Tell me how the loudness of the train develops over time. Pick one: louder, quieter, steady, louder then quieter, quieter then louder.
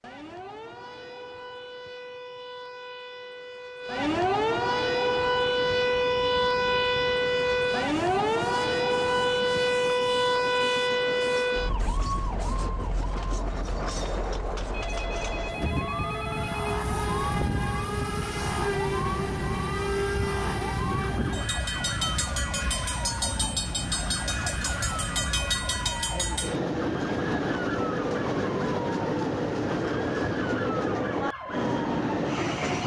louder.